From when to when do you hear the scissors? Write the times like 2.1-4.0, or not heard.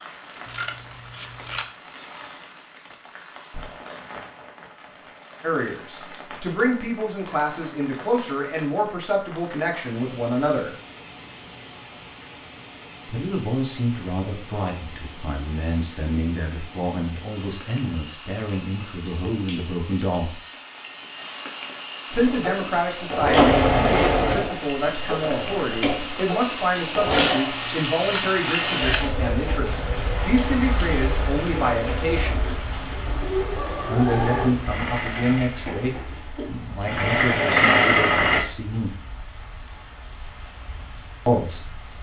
0.5-1.7, 27.0-29.0.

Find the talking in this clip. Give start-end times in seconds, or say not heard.
5.4-10.7, 13.1-20.4, 22.1-32.5, 33.9-39.0, 41.2-41.9.